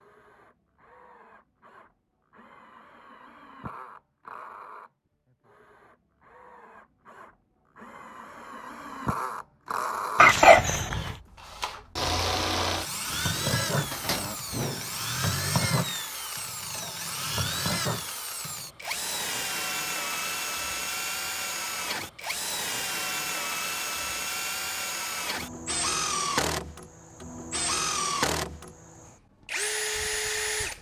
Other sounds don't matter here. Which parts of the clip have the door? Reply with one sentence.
You can hear the door from 13.8 to 15.0 s.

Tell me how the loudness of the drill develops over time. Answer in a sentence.
The volume of the drill goes up.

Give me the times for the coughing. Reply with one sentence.
You can hear the coughing from 10.2 to 11.2 s.